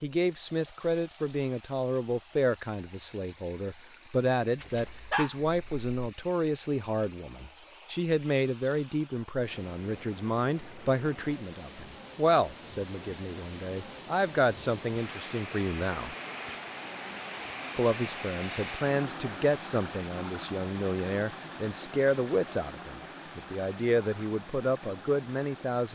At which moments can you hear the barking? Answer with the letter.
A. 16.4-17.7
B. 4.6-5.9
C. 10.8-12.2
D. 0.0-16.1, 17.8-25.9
B.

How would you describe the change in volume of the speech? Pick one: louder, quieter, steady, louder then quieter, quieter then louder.
steady.